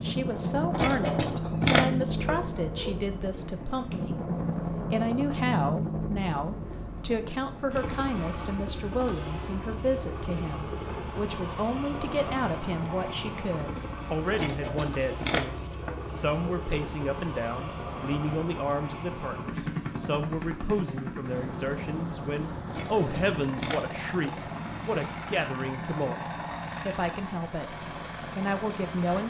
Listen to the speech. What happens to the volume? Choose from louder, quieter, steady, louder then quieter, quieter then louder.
steady.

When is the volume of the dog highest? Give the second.
2 s.